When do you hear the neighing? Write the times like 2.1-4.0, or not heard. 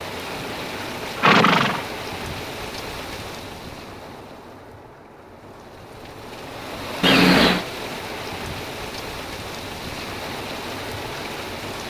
0.1-1.9, 7.0-7.7.